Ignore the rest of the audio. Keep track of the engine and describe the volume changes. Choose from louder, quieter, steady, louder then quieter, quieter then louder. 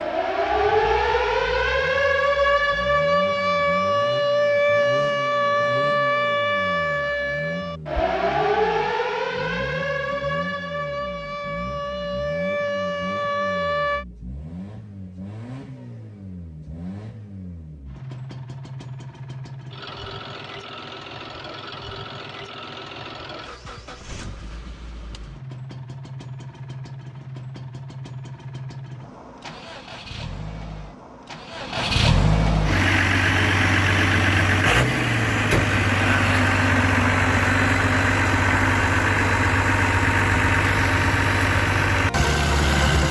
louder.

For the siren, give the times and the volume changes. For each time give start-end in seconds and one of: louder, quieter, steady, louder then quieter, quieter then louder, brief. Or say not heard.
0.0-14.1 quieter.